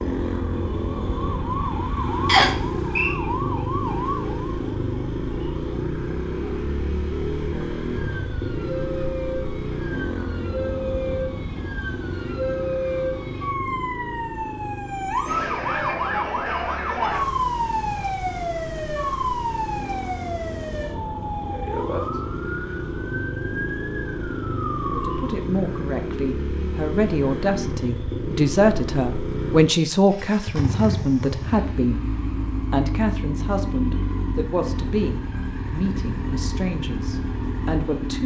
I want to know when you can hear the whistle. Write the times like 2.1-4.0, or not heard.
2.2-3.1.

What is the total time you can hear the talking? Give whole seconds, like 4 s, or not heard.
13 s.